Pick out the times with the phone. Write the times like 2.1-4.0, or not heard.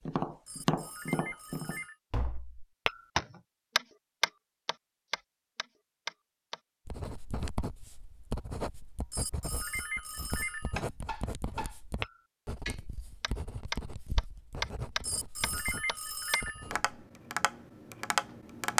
0.5-1.9, 9.1-10.8, 15.0-16.7.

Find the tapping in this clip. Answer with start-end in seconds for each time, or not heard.
0.1-6.6, 10.8-18.7.